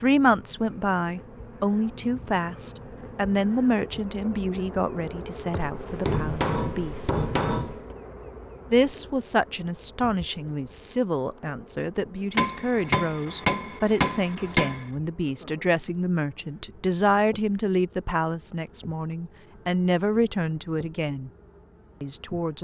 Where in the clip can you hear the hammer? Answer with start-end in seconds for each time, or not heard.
5.6-8.0, 12.3-14.8.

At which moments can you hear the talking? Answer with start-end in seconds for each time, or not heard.
0.0-7.1, 8.7-21.3, 22.0-22.5.